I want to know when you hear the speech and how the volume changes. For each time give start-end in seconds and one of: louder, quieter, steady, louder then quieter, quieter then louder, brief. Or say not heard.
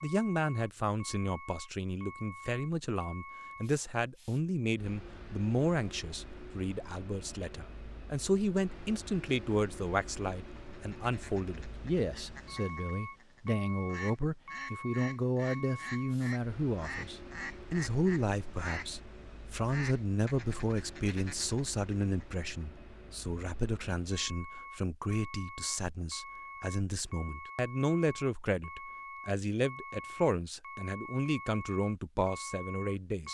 0.0-33.2 steady.